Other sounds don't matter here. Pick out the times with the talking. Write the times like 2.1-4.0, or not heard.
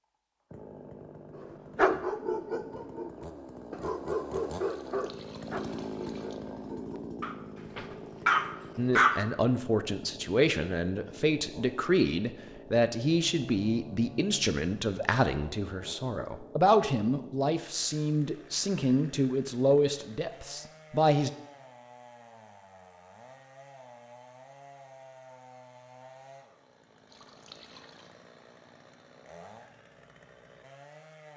8.8-21.3.